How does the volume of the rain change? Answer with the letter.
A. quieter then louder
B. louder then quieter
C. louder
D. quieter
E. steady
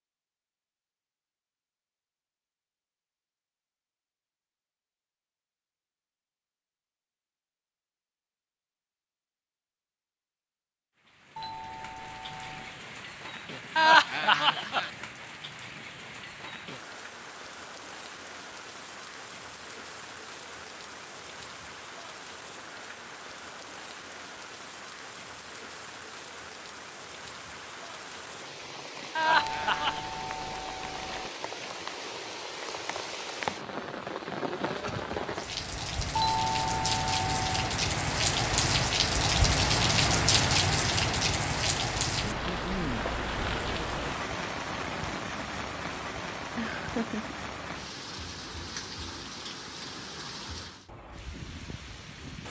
B.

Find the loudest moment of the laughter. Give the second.
14 s.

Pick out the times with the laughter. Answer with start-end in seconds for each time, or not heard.
13.8-14.9, 29.1-30.0, 46.5-47.4.